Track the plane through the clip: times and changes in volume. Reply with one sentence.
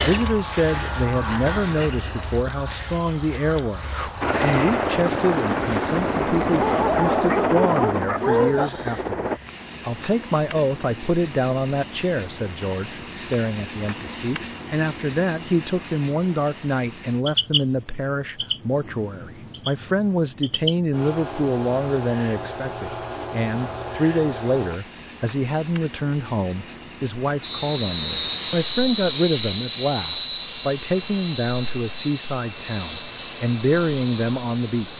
The plane can be heard from 4.2 to 9.4 s, getting quieter; and from 27.4 to 34.9 s, getting quieter.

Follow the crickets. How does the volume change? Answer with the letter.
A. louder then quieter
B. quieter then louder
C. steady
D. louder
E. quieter
E.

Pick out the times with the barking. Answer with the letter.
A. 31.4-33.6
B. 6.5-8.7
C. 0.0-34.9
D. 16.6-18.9
B.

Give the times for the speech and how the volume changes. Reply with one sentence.
You can hear the speech from 0.0 to 34.9 s, at a steady volume.